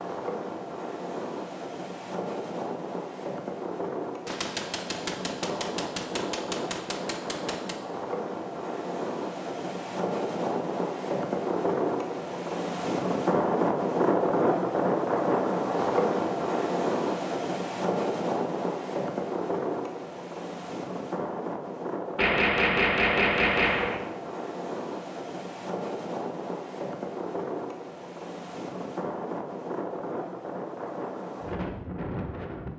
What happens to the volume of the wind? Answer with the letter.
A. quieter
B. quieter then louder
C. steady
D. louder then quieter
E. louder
D.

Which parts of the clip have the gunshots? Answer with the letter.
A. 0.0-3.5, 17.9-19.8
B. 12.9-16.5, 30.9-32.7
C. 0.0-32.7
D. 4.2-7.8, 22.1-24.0
D.